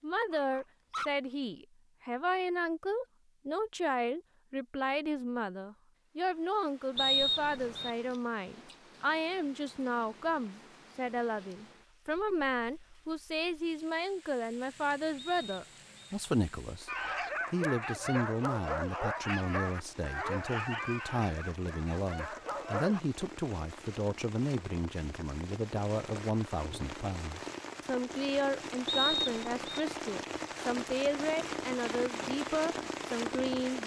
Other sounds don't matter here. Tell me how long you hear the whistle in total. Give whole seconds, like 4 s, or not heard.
3 s.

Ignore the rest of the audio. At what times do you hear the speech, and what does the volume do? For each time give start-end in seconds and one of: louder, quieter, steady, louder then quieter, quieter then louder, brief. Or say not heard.
0.0-16.9 steady
17.5-33.8 steady.